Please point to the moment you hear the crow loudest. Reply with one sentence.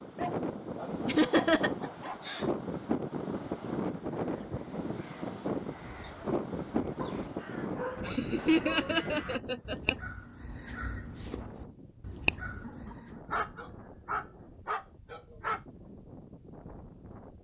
The loudest moment of the crow is at 12 seconds.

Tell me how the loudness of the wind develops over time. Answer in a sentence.
The volume of the wind goes down.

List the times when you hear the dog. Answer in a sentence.
The dog can be heard from 0.1 to 2.2 s, from 7.0 to 9.0 s and from 13.3 to 15.6 s.